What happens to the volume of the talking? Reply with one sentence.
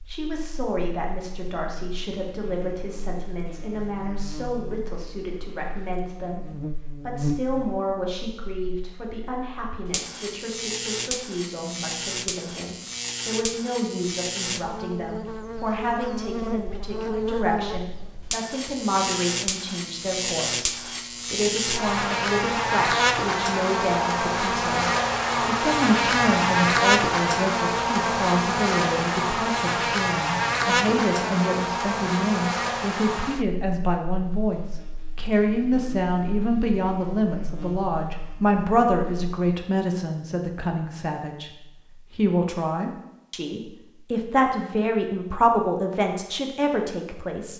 The loudness of the talking goes up.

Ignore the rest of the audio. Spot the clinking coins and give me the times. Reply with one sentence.
The clinking coins can't be heard in this clip.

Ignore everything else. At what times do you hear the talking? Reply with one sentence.
The talking can be heard from 0.1 to 47.5 s.